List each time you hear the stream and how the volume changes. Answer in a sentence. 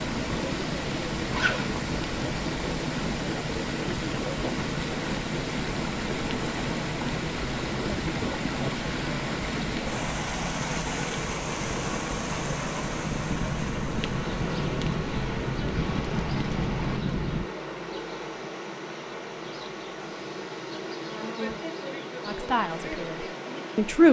The stream can be heard from 0.0 to 24.0 s, getting quieter.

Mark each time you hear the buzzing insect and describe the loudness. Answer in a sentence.
You can hear the buzzing insect from 14.0 to 24.0 s, at a steady volume.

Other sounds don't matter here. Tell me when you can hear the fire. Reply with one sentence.
You can hear the fire from 0.0 to 17.5 s.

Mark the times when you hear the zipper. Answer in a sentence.
The zipper can be heard from 1.3 to 1.8 s.